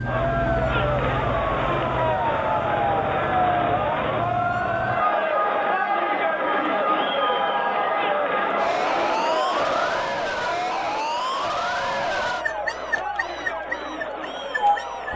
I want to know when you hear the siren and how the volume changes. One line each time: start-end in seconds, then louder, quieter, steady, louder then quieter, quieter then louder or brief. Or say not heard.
0.0-15.1 steady.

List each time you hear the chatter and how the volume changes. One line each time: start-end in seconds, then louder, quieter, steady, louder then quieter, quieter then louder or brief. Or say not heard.
0.0-15.1 quieter.